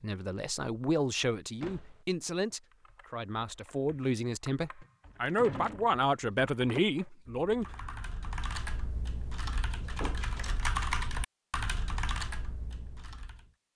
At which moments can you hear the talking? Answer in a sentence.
The talking can be heard from 0.0 to 7.7 s.